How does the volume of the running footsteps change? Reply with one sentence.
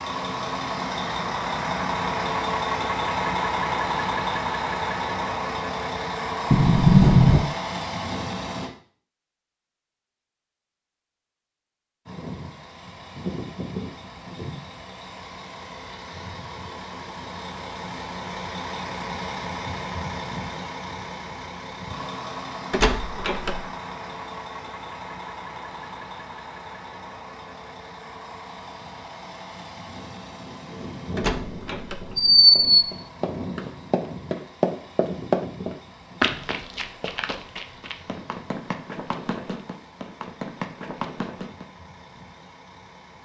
The loudness of the running footsteps goes up, then down.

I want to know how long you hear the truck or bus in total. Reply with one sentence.
You can hear the truck or bus for 40 seconds altogether.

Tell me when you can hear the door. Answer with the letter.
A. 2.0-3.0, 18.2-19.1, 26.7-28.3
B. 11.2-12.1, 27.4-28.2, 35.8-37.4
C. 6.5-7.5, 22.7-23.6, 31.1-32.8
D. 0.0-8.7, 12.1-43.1
C.